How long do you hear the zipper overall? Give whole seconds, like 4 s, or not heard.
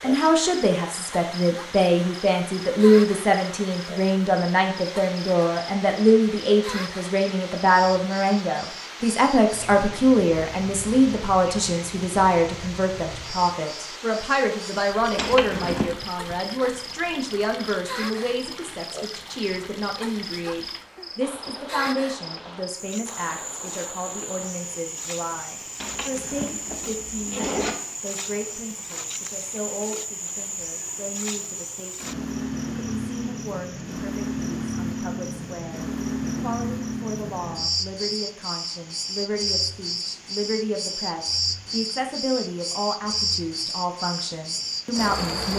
3 s.